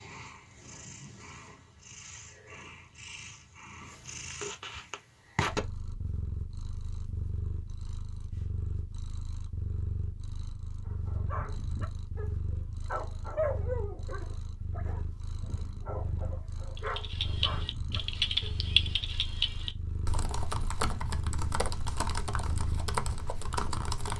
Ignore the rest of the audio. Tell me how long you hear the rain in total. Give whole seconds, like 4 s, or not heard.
not heard.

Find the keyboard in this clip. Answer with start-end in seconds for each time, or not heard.
16.8-24.1.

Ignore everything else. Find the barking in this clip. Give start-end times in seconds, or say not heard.
10.8-18.6.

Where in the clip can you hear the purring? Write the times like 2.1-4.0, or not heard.
0.0-24.0.